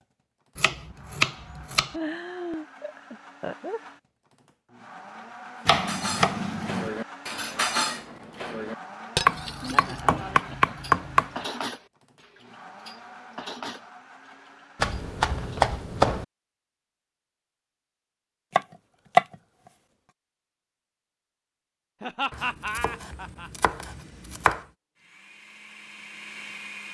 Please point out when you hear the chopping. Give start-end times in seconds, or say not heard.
0.6-1.9, 5.7-6.9, 9.2-11.3, 14.8-16.2, 18.6-19.2, 22.3-24.6.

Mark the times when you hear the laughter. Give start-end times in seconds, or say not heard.
1.9-3.8, 9.7-11.5, 22.0-23.7.